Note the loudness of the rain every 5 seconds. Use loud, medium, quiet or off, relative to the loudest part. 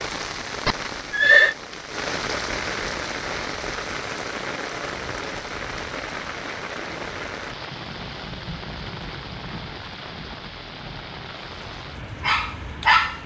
loud, loud, medium.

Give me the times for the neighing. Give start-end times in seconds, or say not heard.
0.7-1.6.